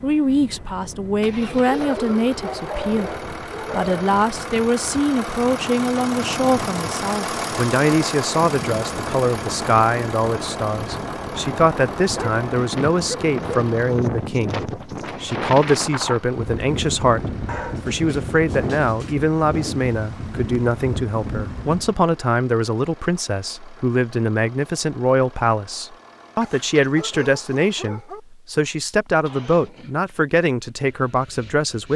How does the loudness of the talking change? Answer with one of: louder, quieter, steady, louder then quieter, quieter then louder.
steady.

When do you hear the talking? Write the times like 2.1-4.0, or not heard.
0.0-3.1, 3.7-31.9.